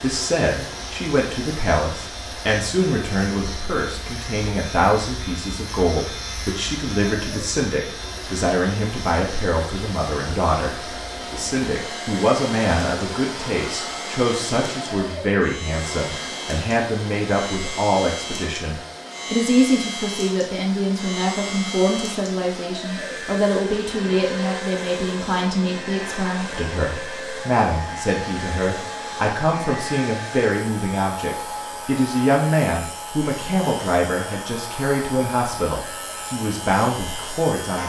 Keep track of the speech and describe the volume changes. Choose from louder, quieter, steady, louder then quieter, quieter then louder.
steady.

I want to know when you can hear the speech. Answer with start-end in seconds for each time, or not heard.
0.0-37.8.